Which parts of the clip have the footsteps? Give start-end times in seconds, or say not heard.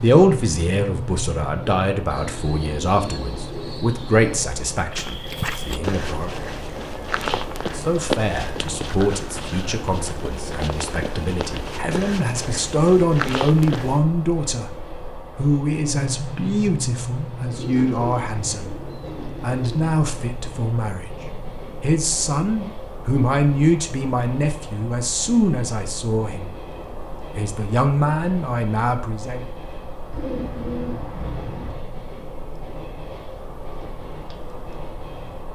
4.9-14.1.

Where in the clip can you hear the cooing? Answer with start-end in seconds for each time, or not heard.
2.1-4.4, 17.5-19.9, 30.1-31.8.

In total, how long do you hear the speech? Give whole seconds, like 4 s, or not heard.
27 s.